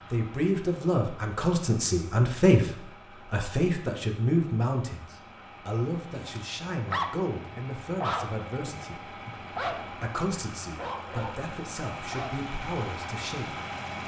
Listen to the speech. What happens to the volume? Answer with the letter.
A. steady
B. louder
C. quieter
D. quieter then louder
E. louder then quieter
C.